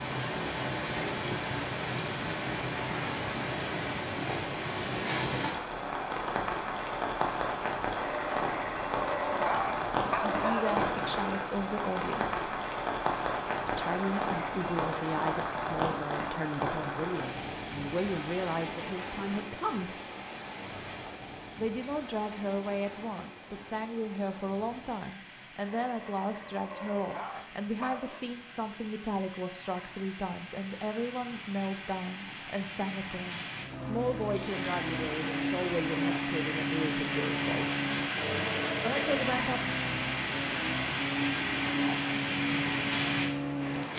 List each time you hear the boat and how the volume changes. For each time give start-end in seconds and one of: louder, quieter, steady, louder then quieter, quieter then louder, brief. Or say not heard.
33.5-43.9 steady.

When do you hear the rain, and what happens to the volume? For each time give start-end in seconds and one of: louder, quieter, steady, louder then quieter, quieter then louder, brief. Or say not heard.
0.0-43.9 quieter then louder.